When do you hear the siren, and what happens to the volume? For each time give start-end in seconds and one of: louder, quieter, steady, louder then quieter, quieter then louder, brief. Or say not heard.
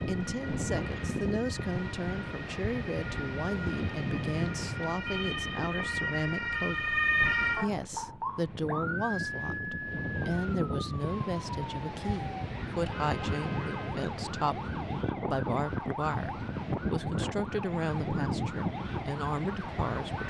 0.0-20.2 louder then quieter.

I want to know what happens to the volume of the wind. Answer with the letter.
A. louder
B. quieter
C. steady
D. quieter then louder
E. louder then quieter
D.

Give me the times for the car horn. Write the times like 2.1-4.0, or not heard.
4.2-4.8, 12.9-14.0.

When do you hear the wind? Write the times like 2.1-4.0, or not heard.
0.0-20.2.